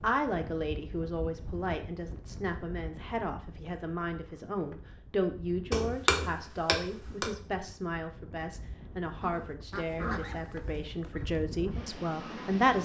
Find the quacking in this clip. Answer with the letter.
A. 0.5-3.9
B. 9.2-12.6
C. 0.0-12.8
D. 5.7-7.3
B.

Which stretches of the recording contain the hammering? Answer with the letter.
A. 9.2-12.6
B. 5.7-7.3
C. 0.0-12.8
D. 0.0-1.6
B.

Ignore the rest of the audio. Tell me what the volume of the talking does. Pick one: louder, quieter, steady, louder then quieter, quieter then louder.
steady.